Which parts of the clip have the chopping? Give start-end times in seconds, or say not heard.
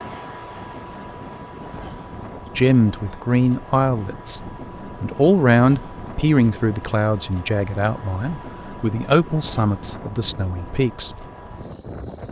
not heard.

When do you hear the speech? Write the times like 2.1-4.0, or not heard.
2.5-11.2.